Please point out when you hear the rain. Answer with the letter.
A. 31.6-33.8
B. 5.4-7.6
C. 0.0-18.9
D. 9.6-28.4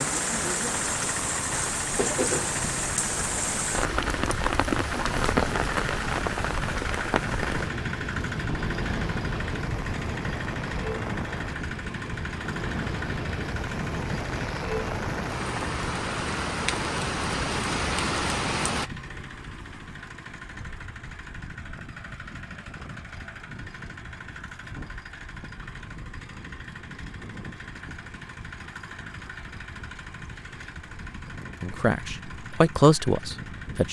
C.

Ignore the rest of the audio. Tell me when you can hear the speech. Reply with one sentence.
You can hear the speech from 31.6 to 33.8 s.